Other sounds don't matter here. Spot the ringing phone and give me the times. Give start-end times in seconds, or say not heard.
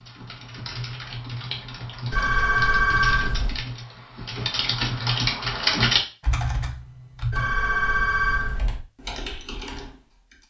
2.1-3.6, 7.3-8.8.